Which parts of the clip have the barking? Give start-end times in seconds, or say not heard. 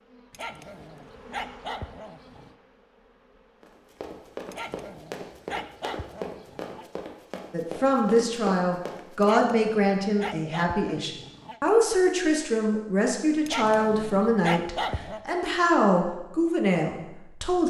0.3-2.5, 4.5-6.8, 9.2-11.6, 13.4-15.2.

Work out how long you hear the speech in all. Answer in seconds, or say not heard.
10 s.